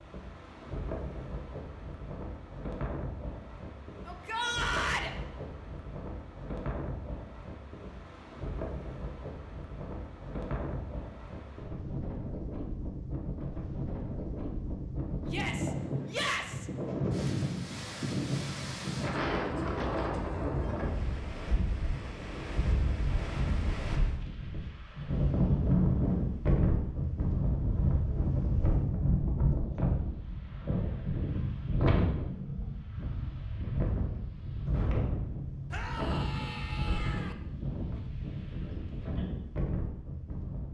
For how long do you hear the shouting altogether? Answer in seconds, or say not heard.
4 s.